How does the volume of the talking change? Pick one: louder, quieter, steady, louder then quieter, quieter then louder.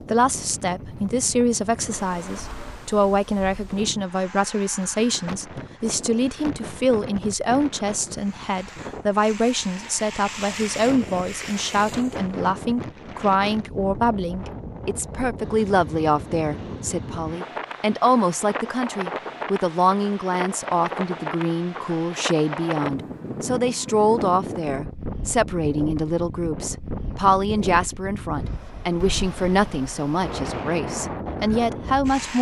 steady.